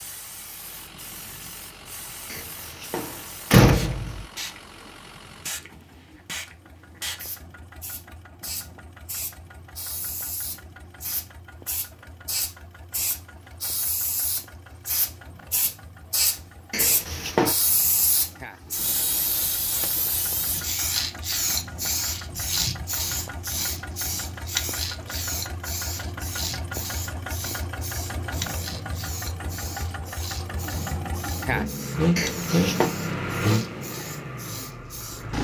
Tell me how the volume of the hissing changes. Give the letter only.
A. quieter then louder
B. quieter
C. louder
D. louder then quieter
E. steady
D.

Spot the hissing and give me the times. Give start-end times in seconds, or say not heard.
0.0-35.3.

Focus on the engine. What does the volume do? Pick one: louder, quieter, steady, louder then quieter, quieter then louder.
louder.